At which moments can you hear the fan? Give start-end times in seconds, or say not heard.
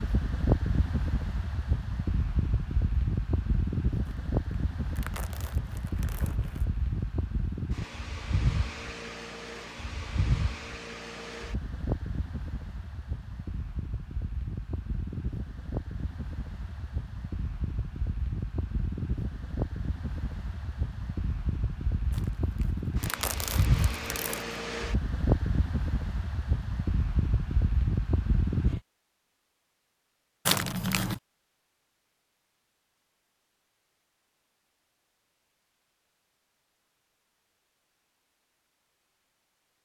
0.0-28.8.